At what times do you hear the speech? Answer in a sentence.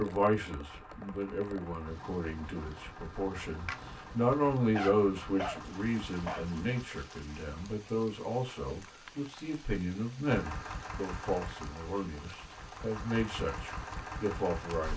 You can hear the speech from 0.0 to 14.9 s.